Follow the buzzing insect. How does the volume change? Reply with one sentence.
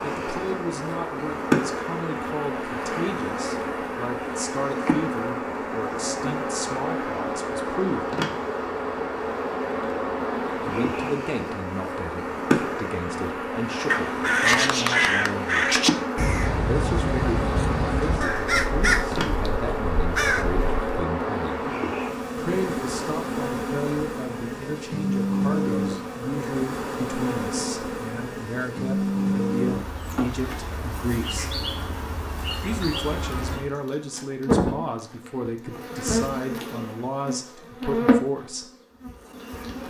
The loudness of the buzzing insect stays about the same.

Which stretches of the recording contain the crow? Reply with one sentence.
You can hear the crow from 13.8 to 20.8 s.